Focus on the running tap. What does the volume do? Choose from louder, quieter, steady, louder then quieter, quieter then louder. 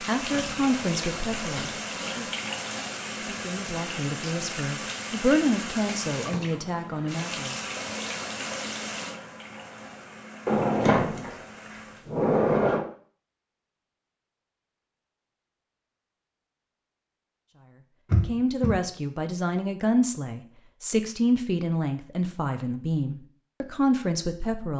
quieter.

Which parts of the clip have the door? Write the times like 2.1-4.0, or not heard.
0.3-1.8, 10.4-12.8, 18.1-18.8.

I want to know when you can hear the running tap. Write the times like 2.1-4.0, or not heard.
0.0-12.1.